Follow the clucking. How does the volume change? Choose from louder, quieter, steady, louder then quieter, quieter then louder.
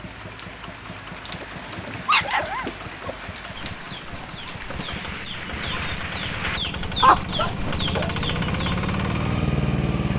louder.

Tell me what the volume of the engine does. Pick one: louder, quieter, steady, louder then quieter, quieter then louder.
louder.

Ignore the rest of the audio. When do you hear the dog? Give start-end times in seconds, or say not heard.
2.0-3.1, 7.3-8.2.